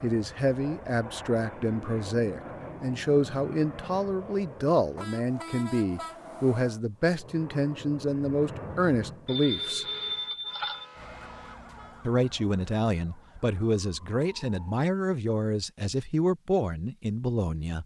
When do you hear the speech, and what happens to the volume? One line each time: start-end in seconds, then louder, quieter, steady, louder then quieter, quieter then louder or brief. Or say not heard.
0.0-9.8 steady
12.1-17.8 steady.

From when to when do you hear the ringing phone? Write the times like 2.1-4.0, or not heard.
9.2-10.8.